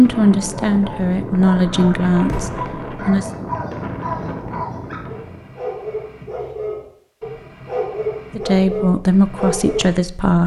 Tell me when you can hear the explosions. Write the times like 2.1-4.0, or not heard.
2.2-2.7.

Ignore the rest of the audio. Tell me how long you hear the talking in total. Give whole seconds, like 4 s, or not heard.
5 s.